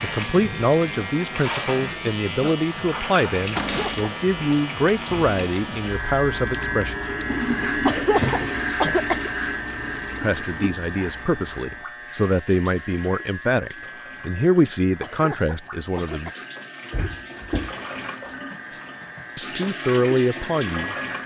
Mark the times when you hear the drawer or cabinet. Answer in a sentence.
The drawer or cabinet can be heard from 3.5 to 4.1 s, from 8.1 to 8.7 s and from 16.9 to 17.8 s.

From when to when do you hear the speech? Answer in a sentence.
You can hear the speech from 0.0 to 7.0 s, from 10.2 to 16.3 s and from 18.7 to 20.9 s.